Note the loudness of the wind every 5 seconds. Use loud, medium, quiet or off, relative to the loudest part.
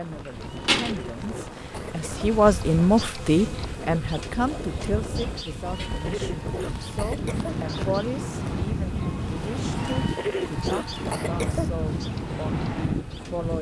medium, loud, loud.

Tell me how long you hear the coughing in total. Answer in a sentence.
You can hear the coughing for 6 seconds altogether.